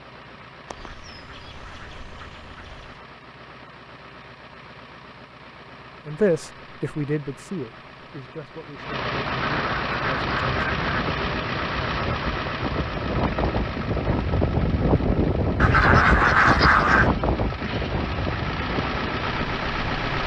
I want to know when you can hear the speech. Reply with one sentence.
The speech can be heard from 6.0 to 10.7 s.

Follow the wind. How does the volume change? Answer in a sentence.
The volume of the wind goes up, then down.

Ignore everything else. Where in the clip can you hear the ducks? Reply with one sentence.
You can hear the ducks from 0.7 to 3.0 s, from 9.4 to 10.9 s and from 15.6 to 17.1 s.